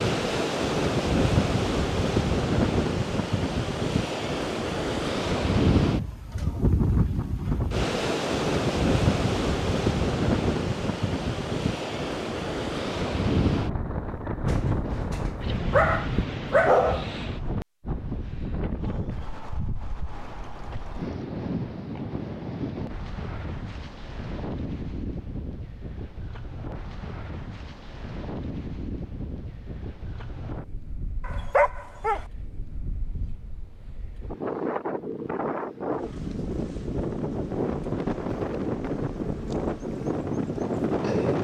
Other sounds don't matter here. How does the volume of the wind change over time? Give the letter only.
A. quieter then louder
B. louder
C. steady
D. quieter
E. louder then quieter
A.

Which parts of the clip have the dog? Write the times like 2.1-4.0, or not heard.
14.4-17.1, 31.2-32.2.